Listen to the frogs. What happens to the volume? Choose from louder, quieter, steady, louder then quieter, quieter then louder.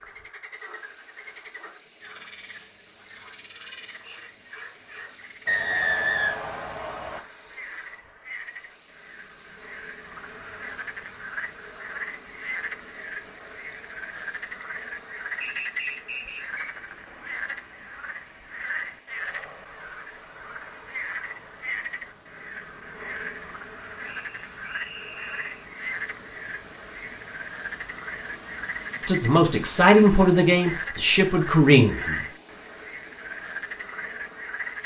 louder.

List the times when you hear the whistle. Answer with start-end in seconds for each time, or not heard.
5.5-7.2, 15.4-16.8, 24.0-25.6.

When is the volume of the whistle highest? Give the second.
6 s.